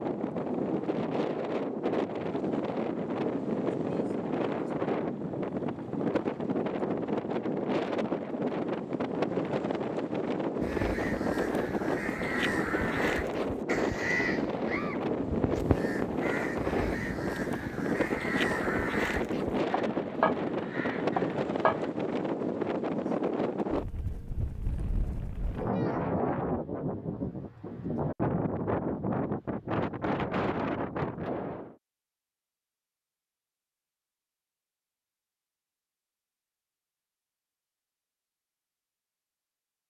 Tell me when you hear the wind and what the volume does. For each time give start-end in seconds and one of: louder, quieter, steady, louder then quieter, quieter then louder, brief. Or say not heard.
0.0-31.8 steady.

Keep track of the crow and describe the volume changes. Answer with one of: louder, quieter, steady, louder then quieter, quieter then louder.
steady.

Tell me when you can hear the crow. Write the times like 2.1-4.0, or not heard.
10.6-21.9.